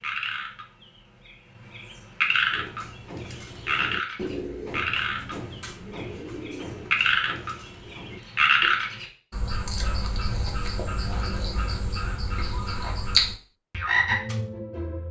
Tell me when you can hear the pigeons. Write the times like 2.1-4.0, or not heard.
2.5-8.8.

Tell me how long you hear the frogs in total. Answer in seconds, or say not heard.
15 s.